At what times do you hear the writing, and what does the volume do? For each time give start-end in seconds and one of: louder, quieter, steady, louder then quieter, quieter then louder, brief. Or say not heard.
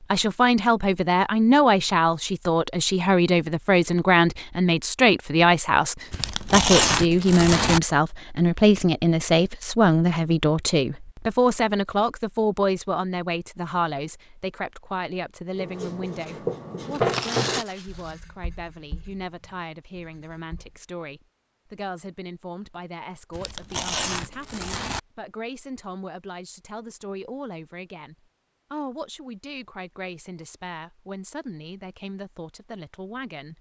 15.6-20.7 louder then quieter.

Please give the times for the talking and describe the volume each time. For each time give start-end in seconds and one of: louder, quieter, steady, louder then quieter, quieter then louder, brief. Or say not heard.
0.0-33.5 quieter.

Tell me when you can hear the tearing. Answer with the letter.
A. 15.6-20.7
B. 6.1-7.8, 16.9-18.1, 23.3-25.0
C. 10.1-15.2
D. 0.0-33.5
B.